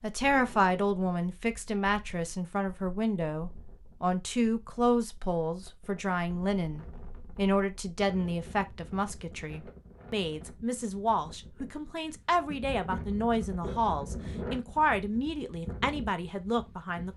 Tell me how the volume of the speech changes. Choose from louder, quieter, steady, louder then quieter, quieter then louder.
steady.